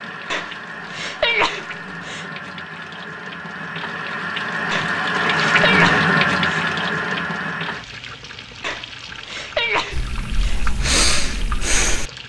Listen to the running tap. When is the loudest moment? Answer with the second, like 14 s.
6 s.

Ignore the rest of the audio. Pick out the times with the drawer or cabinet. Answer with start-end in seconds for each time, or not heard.
not heard.